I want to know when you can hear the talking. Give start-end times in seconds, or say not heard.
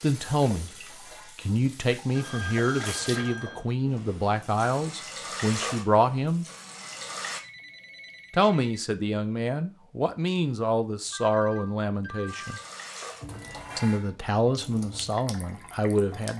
0.0-0.8, 1.4-6.5, 8.3-12.6, 13.8-16.3.